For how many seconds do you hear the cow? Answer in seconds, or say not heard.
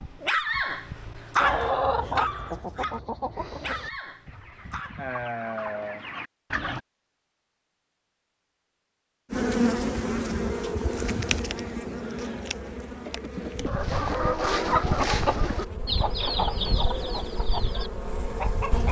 not heard.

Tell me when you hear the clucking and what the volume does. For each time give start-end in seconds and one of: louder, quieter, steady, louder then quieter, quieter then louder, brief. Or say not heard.
1.4-6.8 quieter then louder
13.7-18.8 quieter.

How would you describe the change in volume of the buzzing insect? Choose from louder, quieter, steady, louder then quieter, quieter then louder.
quieter.